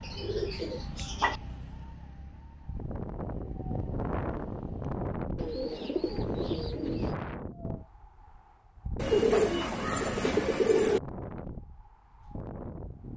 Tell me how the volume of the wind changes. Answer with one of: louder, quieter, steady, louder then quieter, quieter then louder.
quieter.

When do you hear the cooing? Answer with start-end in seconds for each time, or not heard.
0.0-1.4, 5.3-7.2, 8.9-11.0.